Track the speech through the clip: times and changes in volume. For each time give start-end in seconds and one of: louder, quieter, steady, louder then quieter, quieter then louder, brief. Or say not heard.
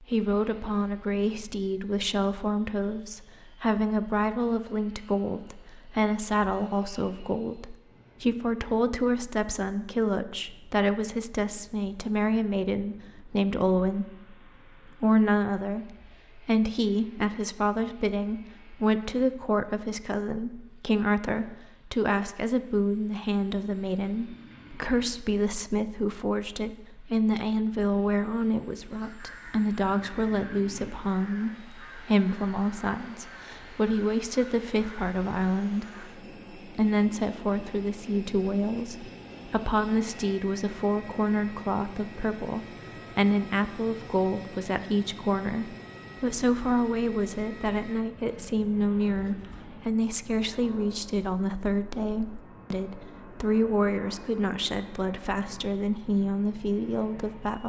0.0-57.6 steady.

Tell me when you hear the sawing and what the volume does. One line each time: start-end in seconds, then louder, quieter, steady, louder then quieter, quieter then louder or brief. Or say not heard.
not heard.